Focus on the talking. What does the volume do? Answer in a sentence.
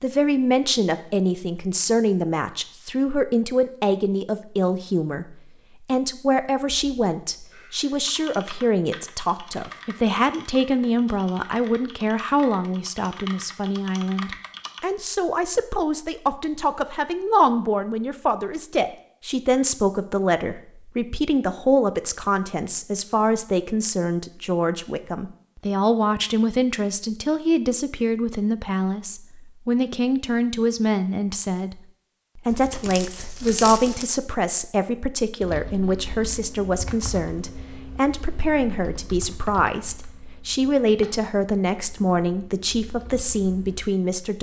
The loudness of the talking stays about the same.